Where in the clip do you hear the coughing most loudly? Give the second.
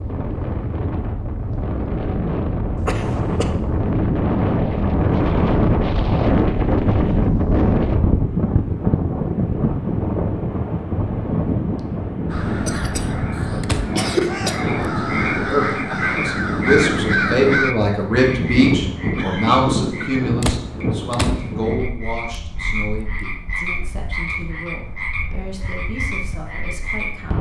14 s.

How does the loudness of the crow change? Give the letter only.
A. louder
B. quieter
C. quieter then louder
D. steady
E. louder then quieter
A.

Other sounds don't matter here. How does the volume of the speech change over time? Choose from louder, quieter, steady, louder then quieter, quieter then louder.
louder then quieter.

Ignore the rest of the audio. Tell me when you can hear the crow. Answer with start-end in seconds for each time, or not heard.
12.3-17.8.